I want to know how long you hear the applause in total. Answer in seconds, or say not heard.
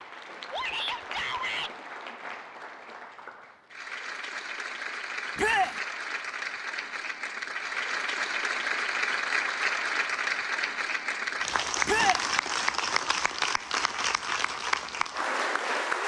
16 s.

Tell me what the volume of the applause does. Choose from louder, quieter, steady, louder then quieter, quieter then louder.
louder.